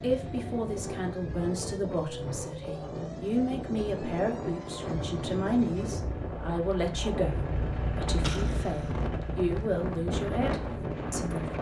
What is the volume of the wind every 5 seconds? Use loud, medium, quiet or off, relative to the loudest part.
medium, loud, loud.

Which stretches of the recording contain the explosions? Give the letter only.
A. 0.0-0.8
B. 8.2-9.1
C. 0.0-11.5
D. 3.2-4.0
B.